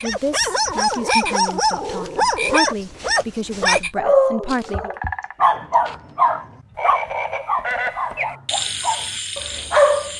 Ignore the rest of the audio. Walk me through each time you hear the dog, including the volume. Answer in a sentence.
The dog can be heard from 0.0 to 10.1 s, getting quieter.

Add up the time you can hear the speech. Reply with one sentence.
The speech can be heard for 5 seconds in total.